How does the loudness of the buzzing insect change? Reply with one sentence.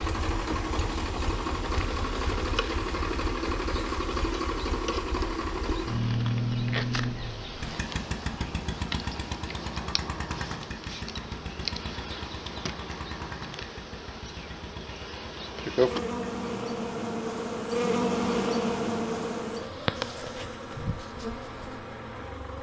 The loudness of the buzzing insect goes up.